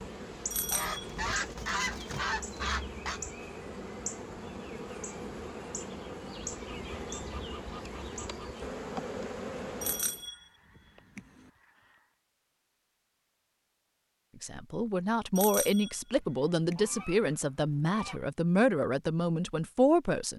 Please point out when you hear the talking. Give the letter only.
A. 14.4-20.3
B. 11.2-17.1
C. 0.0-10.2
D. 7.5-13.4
A.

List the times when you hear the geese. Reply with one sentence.
You can hear the geese from 0.7 to 3.2 s, from 6.5 to 8.6 s, from 10.2 to 12.2 s and from 16.8 to 18.2 s.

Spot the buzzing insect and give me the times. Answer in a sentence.
The buzzing insect can be heard from 0.0 to 10.2 s.